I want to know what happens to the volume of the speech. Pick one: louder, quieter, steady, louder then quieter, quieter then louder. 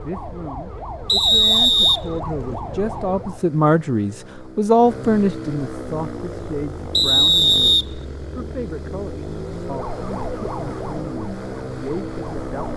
louder then quieter.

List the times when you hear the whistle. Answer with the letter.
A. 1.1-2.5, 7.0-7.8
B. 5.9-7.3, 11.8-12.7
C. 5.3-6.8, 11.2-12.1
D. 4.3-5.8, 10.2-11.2
A.